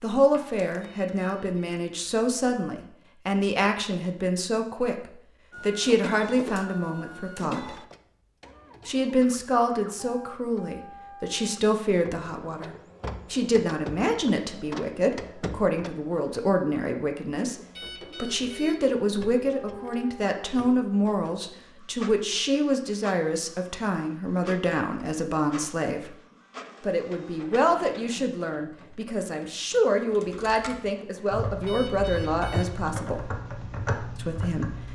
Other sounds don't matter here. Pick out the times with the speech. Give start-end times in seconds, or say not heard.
0.0-7.8, 8.8-26.1, 26.8-33.2, 34.1-34.9.